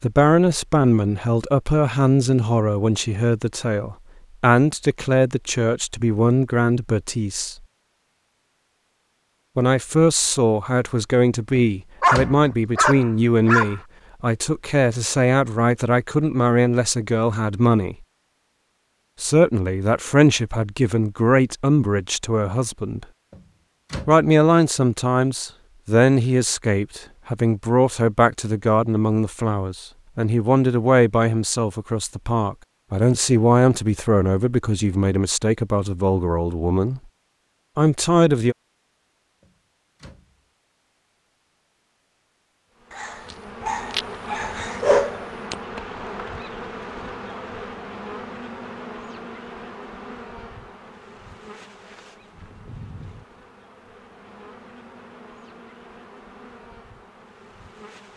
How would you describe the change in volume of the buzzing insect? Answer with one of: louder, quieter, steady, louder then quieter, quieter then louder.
quieter.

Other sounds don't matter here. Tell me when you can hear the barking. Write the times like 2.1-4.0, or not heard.
12.0-13.8, 42.9-45.5.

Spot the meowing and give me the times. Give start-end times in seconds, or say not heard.
not heard.